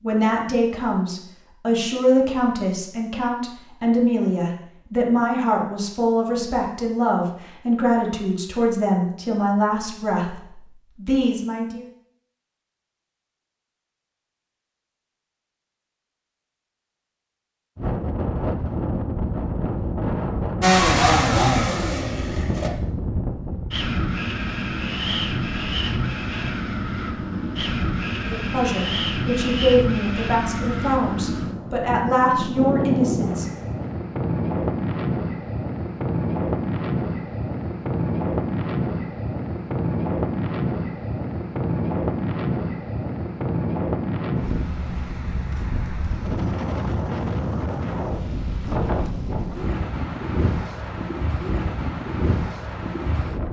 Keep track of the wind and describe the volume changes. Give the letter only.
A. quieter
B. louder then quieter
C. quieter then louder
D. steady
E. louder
D.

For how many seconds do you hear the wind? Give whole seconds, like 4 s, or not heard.
36 s.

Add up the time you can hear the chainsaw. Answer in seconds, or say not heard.
2 s.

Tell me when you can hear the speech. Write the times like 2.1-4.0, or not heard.
0.0-11.8, 28.2-33.5.